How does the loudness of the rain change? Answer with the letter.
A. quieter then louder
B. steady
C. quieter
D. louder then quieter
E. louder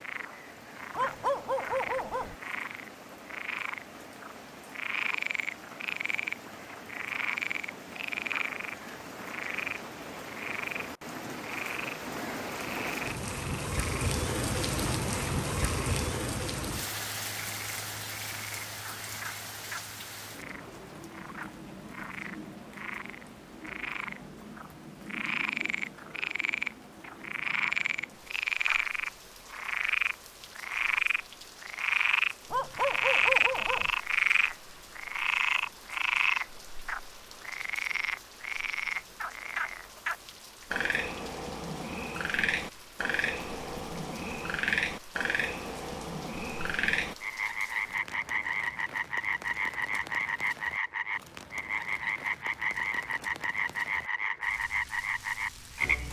D.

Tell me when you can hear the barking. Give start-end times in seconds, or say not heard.
0.9-2.4, 32.5-33.9.